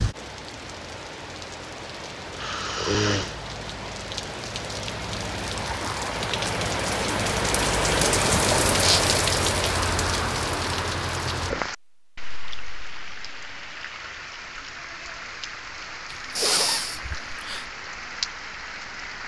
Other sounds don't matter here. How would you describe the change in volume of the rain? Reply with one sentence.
The loudness of the rain goes up, then down.